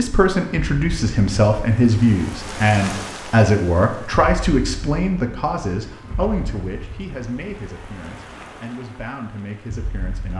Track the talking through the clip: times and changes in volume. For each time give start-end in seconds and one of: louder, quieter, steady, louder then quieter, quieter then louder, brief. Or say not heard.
0.0-10.3 quieter.